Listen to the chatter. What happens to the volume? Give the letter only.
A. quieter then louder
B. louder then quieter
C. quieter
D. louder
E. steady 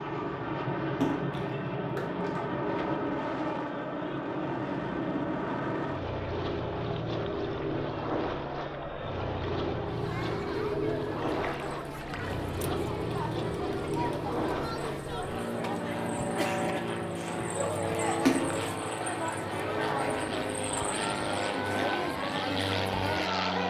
D.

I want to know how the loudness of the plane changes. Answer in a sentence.
The volume of the plane stays about the same.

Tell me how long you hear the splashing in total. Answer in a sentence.
You can hear the splashing for 3 seconds altogether.